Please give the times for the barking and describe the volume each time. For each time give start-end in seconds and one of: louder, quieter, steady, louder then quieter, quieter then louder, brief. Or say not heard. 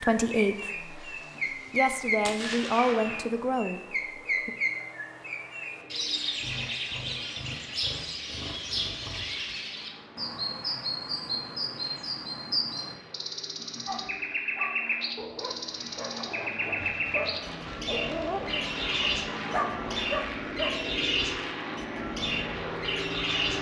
13.8-20.9 louder.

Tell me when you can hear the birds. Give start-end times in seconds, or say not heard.
0.0-23.5.